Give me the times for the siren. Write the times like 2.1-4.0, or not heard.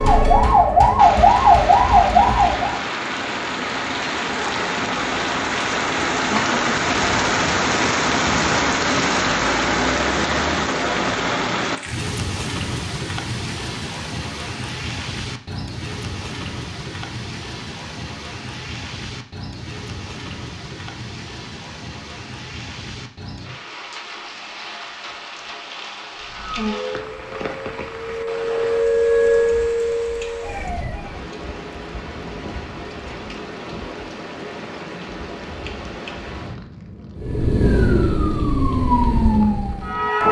0.0-2.8, 26.1-31.2, 37.1-40.2.